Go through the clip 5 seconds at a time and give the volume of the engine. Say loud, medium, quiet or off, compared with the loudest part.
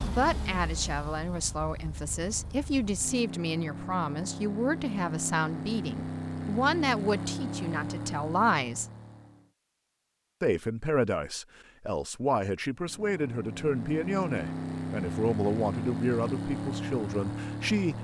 medium, loud, loud, loud.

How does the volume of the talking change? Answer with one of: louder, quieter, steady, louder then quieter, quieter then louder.
steady.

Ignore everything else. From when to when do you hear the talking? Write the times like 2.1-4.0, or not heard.
0.0-8.8, 10.4-17.9.